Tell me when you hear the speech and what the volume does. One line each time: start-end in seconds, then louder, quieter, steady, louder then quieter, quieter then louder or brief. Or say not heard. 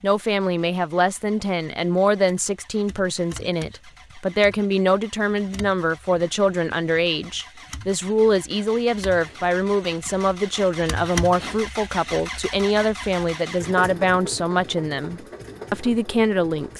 0.0-16.7 steady.